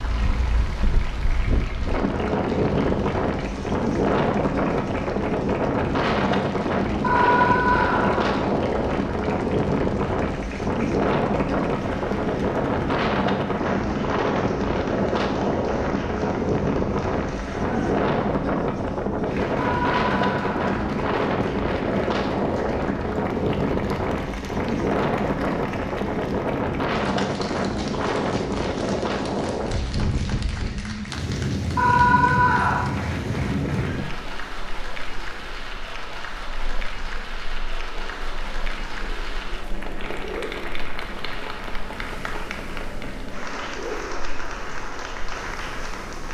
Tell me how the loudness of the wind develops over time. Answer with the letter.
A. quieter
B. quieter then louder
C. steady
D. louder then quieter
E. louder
A.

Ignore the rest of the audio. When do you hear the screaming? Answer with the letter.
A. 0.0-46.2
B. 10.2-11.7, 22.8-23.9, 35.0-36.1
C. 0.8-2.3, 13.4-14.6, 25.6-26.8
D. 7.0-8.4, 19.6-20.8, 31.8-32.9
D.